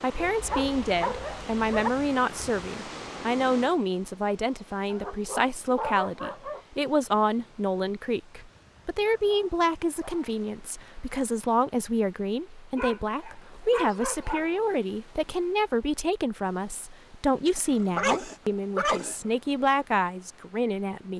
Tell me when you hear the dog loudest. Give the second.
18 s.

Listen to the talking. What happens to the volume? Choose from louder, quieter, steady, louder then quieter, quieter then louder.
steady.